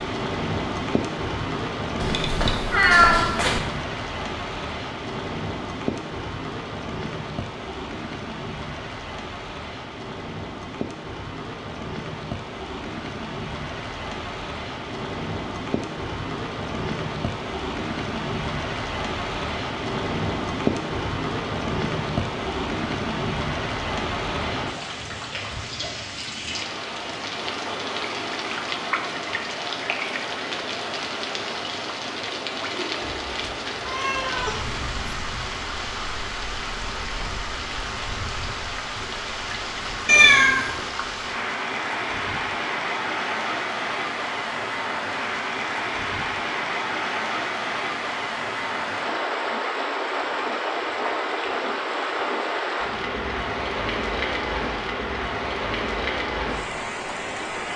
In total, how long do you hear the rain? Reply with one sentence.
You can hear the rain for 58 seconds altogether.